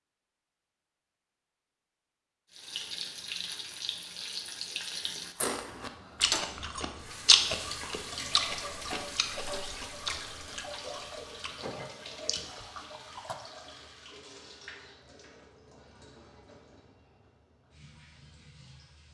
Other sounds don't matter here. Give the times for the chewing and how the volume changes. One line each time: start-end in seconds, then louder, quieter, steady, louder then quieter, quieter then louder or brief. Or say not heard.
5.3-13.3 louder then quieter.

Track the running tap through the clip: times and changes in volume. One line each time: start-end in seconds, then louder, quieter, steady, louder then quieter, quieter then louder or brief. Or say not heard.
2.5-19.0 quieter.